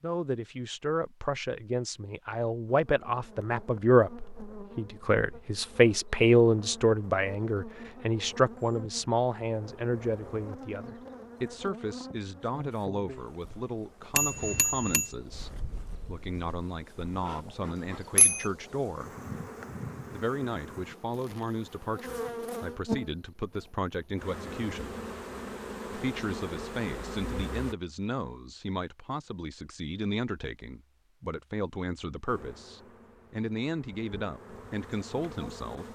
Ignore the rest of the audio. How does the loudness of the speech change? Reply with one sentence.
The volume of the speech goes down.